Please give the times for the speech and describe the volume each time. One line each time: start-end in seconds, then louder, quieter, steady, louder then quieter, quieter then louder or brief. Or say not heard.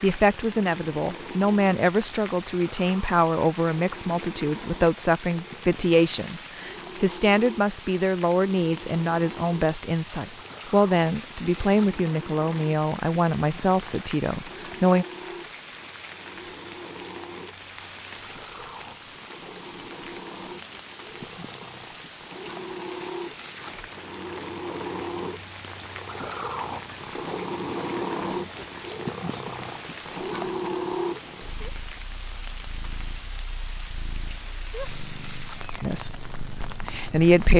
0.0-15.1 steady
35.8-37.5 brief.